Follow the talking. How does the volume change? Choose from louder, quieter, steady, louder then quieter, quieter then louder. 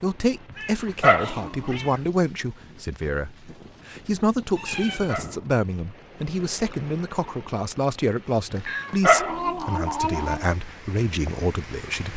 steady.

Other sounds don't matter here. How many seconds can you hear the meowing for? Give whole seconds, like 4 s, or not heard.
4 s.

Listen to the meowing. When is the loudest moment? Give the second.
10 s.